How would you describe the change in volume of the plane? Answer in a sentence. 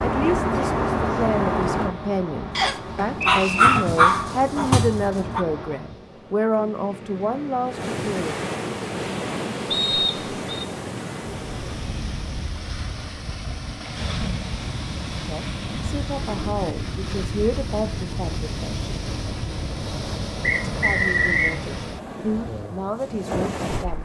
The loudness of the plane goes down.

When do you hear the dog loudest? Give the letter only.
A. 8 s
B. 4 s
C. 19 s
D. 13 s
B.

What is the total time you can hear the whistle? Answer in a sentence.
The whistle can be heard for 3 seconds in total.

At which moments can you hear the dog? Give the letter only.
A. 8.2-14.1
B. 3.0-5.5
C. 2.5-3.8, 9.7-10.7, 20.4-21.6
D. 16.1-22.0
B.